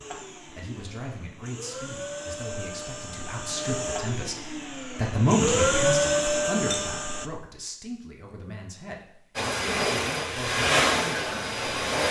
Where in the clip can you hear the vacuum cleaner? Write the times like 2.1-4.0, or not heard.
0.0-7.3, 9.3-12.0.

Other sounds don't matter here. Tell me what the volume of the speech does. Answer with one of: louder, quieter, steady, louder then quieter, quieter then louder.
louder then quieter.